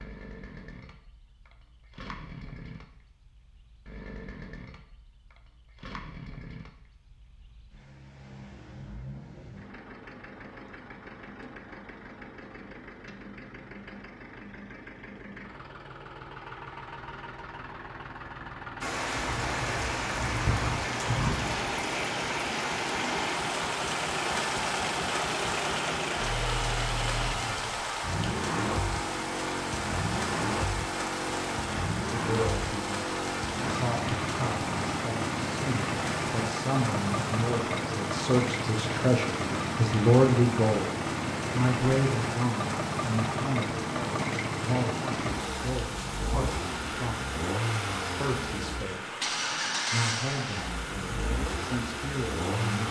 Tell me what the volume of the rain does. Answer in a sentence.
The volume of the rain goes down.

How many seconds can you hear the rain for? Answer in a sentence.
The rain can be heard for 34 seconds in total.